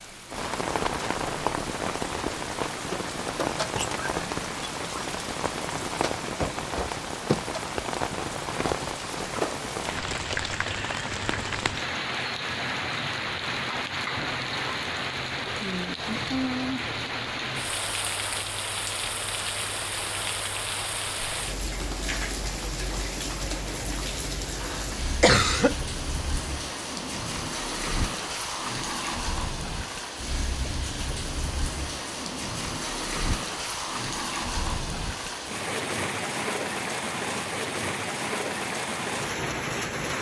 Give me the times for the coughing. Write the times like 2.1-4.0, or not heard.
24.4-25.8.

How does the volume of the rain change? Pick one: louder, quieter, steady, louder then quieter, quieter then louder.
steady.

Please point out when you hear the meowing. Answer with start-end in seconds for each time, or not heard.
not heard.